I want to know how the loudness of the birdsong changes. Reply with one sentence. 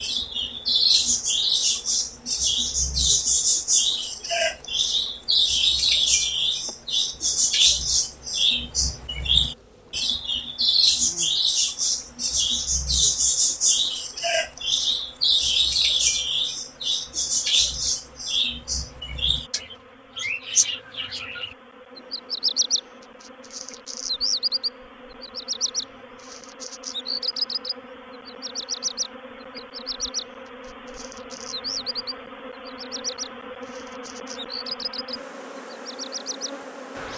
The loudness of the birdsong goes down.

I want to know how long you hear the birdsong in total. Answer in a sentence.
The birdsong can be heard for 37 seconds in total.